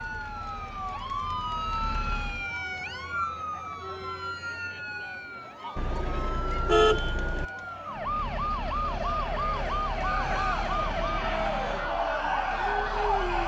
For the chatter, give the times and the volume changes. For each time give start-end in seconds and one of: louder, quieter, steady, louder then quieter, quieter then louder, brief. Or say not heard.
0.0-13.4 louder.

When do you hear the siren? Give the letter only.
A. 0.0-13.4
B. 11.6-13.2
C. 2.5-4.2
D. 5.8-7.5
A.